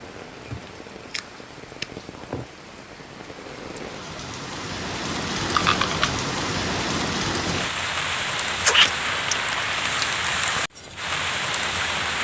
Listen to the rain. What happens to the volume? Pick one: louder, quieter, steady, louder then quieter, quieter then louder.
louder.